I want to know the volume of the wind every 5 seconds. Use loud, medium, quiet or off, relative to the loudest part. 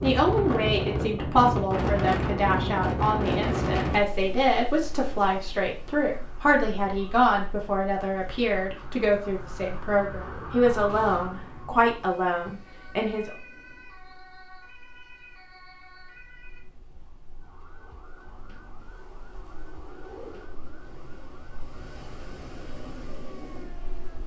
loud, quiet, quiet, quiet, quiet.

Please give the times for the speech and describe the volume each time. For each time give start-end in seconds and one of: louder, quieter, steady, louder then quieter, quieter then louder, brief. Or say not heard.
0.0-13.3 steady.